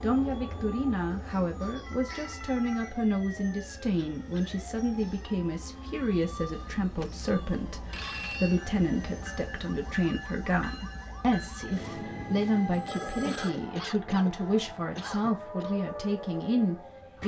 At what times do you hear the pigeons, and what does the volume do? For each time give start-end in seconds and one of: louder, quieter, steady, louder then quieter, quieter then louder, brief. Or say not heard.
not heard.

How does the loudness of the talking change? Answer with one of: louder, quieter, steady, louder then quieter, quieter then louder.
steady.